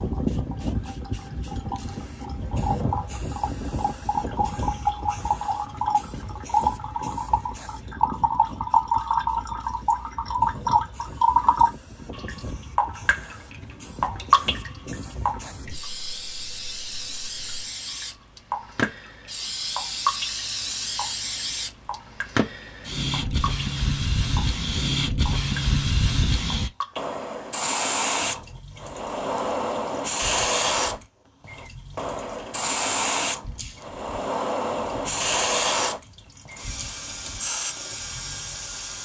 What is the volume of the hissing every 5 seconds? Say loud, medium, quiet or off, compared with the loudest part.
medium, quiet, quiet, medium, loud, loud, loud, loud.